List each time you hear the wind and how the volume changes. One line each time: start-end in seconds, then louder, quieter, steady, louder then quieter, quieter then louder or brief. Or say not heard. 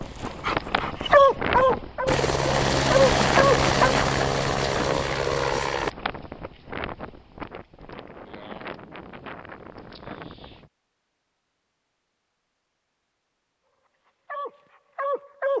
0.0-10.7 quieter.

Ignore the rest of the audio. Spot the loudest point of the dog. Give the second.
1 s.